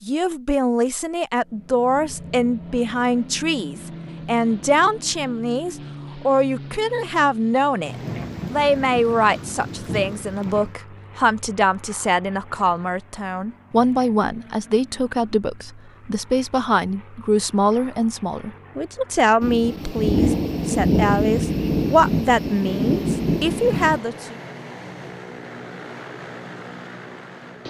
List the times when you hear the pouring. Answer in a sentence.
The pouring can't be heard in this clip.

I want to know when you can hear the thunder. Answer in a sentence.
The thunder can be heard from 7.8 to 10.8 s and from 19.4 to 24.0 s.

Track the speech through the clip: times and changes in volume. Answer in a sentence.
The speech can be heard from 0.0 to 24.4 s, at a steady volume.